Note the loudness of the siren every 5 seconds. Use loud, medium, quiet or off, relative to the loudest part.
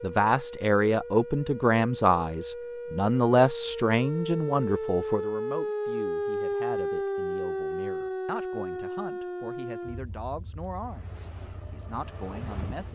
medium, loud, quiet.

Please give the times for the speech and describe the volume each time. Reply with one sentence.
You can hear the speech from 0.0 to 12.9 s, getting quieter.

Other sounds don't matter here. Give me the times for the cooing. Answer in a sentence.
You can't hear the cooing here.